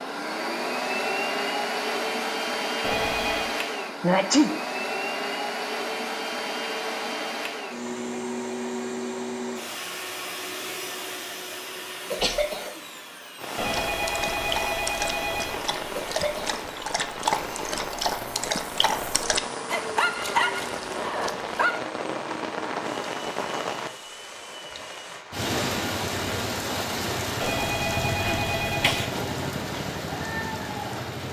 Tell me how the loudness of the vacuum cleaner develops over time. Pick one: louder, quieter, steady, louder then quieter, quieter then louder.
quieter.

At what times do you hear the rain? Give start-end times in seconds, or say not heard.
13.3-31.2.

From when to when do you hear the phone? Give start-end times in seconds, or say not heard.
2.8-3.5, 13.6-15.6, 27.4-29.1.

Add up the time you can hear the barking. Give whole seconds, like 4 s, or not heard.
8 s.